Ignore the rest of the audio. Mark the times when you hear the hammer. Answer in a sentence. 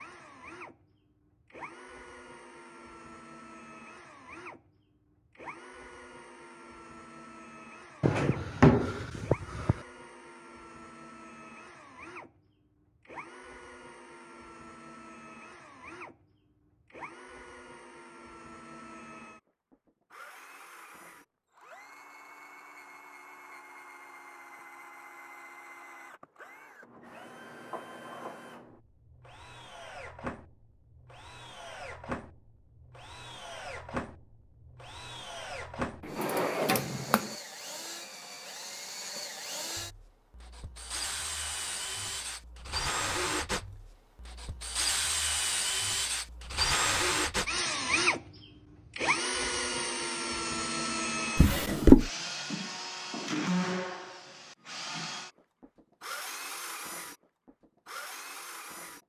You can't hear the hammer here.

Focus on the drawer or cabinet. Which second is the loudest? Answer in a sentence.
The loudest moment of the drawer or cabinet is at 52 seconds.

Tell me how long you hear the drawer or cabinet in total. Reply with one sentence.
You can hear the drawer or cabinet for 4 seconds altogether.